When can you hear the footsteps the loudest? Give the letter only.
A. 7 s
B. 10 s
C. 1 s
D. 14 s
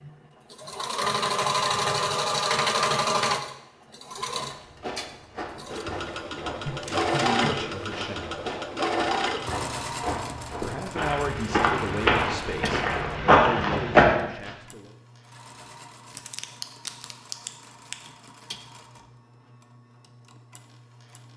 D.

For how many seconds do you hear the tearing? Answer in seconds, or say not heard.
3 s.